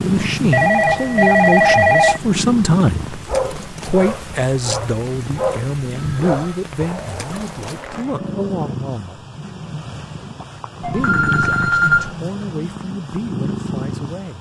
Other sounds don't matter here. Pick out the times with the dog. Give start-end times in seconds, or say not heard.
3.1-8.8.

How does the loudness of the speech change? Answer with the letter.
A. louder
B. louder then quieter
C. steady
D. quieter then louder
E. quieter
E.